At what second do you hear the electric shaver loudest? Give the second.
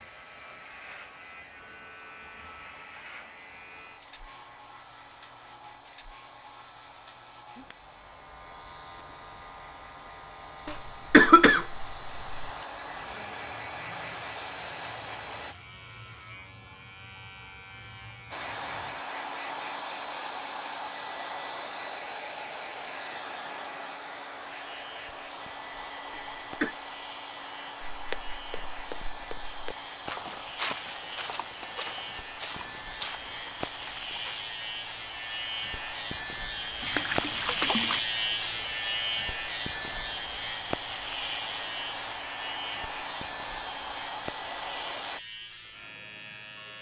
38 s.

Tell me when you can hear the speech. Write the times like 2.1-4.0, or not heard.
not heard.